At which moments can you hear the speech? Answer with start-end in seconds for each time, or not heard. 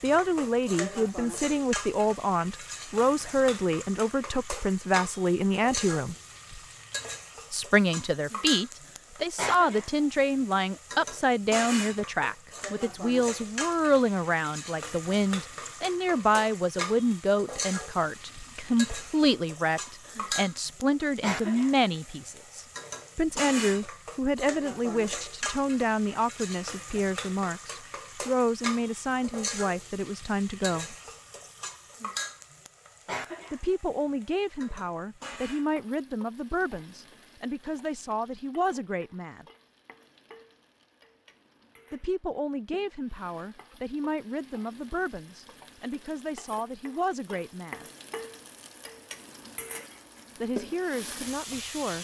0.0-6.2, 7.5-30.9, 33.5-39.5, 41.9-47.9, 50.4-51.9.